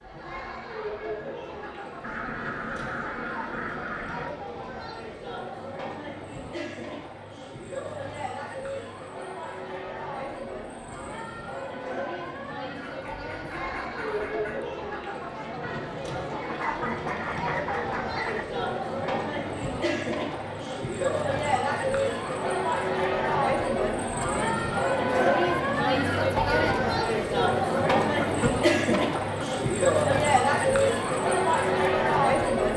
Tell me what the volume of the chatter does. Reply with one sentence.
The loudness of the chatter goes up.